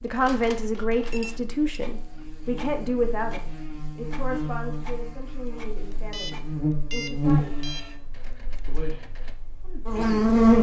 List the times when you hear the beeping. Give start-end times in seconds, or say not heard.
1.1-1.8, 5.9-7.8.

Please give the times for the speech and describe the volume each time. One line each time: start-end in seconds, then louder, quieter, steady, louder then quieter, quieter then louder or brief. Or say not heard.
0.0-7.7 quieter
8.7-10.4 brief.